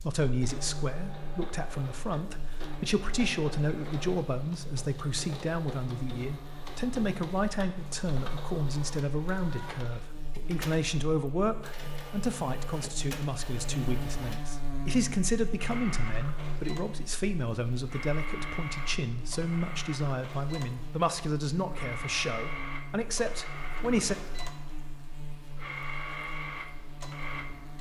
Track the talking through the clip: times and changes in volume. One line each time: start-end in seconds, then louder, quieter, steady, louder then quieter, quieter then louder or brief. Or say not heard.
0.0-24.1 steady.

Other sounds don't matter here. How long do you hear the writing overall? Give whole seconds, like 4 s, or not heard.
not heard.